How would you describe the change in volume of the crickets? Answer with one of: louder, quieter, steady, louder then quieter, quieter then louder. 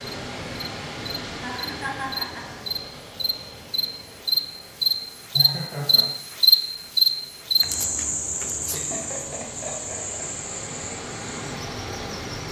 louder then quieter.